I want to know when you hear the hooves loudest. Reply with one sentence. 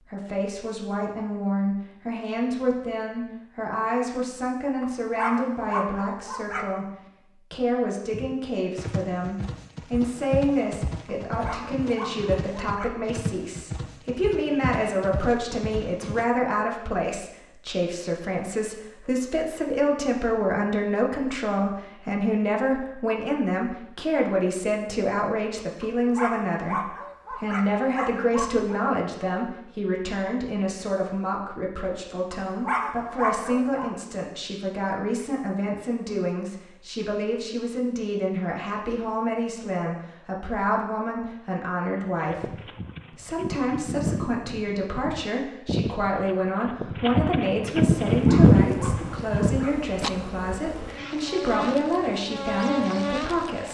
The loudest moment of the hooves is at 48 seconds.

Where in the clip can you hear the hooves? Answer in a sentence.
You can hear the hooves from 8.1 to 16.2 s and from 42.2 to 50.1 s.